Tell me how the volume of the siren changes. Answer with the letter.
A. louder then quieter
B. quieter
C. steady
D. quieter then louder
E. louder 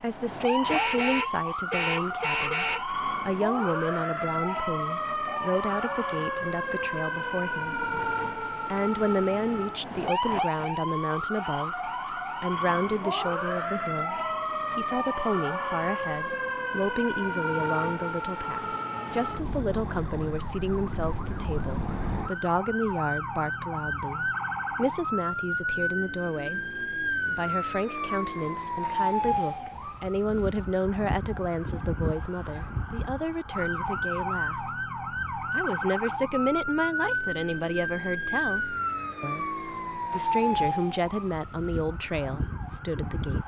C.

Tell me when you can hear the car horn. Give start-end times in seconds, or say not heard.
0.7-2.9.